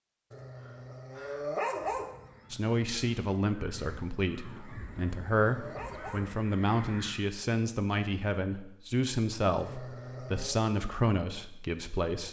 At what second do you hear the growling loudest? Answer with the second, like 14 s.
2 s.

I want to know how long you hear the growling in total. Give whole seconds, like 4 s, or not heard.
5 s.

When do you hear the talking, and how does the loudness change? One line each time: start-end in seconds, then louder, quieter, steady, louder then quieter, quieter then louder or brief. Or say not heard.
2.5-12.2 steady.